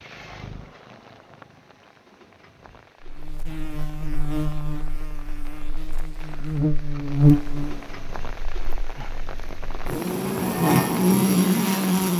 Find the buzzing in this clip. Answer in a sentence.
You can hear the buzzing from 3.0 to 12.1 s.